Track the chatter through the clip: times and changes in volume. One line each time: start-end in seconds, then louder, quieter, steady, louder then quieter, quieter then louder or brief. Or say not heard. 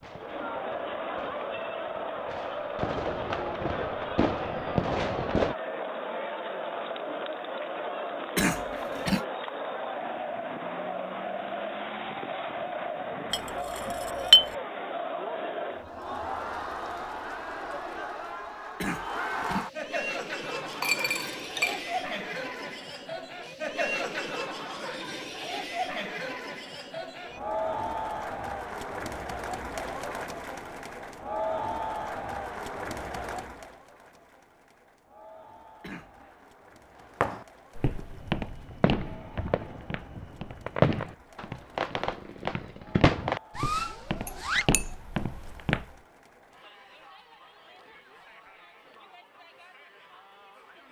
0.0-50.8 quieter.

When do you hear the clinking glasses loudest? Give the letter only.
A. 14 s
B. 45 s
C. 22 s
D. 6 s
A.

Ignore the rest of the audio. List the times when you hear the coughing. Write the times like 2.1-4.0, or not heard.
8.3-9.2, 18.8-19.6, 35.8-36.5.